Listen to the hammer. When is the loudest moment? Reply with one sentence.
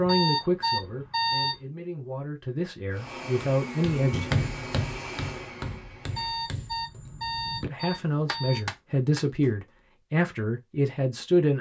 The volume of the hammer peaks at 4 seconds.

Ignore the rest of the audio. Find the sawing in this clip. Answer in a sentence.
You can't hear the sawing here.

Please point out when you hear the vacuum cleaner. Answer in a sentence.
You can hear the vacuum cleaner from 2.9 to 6.5 s.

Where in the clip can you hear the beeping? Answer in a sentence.
The beeping can be heard from 0.1 to 1.6 s and from 6.1 to 8.7 s.